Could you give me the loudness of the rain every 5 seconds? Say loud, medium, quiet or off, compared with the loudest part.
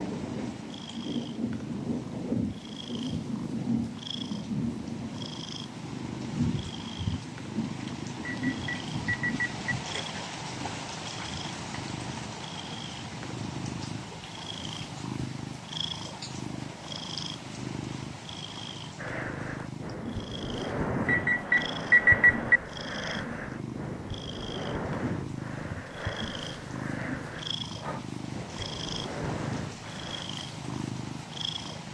loud, loud, medium, medium, medium, medium, medium.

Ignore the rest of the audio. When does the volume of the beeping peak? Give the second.
22 s.